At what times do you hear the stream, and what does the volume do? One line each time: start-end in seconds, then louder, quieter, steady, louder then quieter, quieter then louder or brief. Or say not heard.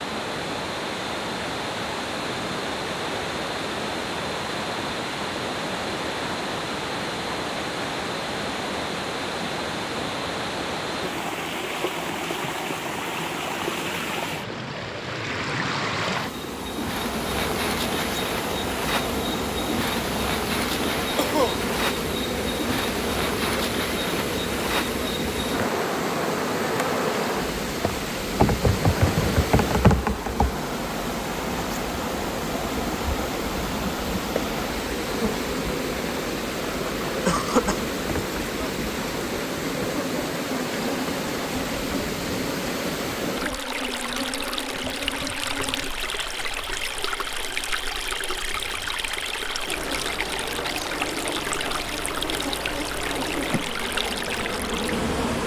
0.0-55.4 steady.